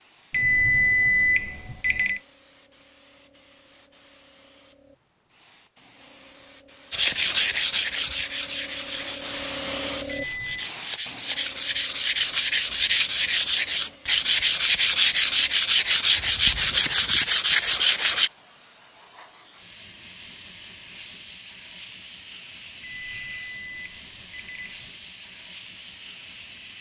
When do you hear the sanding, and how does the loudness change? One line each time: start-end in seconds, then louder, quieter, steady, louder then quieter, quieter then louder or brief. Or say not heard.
6.9-18.3 quieter then louder.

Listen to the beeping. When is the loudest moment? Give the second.
1 s.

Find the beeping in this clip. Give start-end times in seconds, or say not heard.
0.3-2.2, 10.1-10.7, 22.8-24.9.